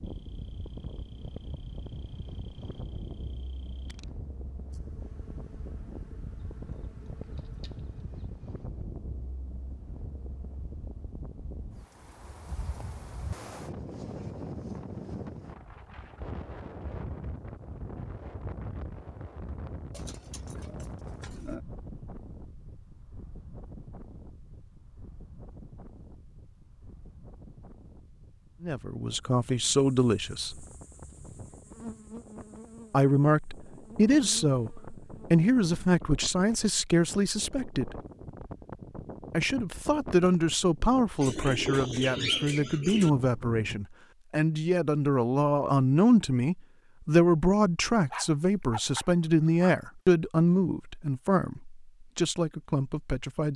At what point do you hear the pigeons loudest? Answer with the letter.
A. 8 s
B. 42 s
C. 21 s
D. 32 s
B.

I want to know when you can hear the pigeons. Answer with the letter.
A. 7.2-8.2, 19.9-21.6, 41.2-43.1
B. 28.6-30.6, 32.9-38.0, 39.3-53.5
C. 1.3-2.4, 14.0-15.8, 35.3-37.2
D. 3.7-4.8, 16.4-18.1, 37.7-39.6
A.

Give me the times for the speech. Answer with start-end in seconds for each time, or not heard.
28.6-30.6, 32.9-38.0, 39.3-53.5.